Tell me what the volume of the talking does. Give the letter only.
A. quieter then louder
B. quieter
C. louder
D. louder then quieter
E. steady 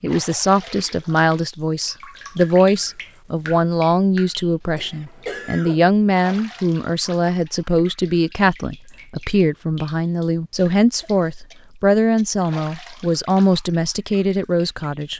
E.